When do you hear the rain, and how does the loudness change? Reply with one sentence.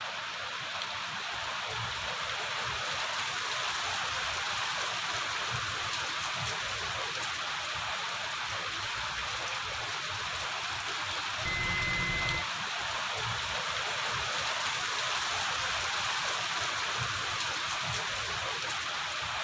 The rain can be heard from 0.0 to 19.3 s, at a steady volume.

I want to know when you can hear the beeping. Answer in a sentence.
You can hear the beeping from 11.4 to 12.4 s.